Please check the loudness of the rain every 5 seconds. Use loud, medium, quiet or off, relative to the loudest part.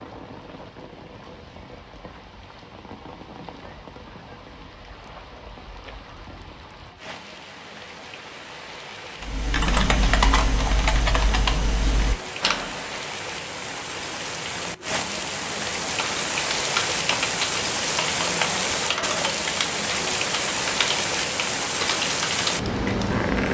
quiet, quiet, medium, loud, loud.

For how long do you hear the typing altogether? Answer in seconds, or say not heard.
11 s.